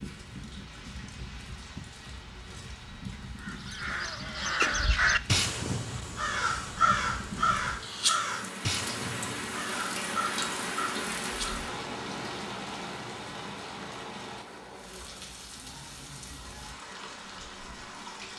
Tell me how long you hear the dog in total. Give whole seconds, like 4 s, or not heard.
not heard.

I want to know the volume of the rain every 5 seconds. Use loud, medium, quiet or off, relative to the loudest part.
medium, loud, loud, medium.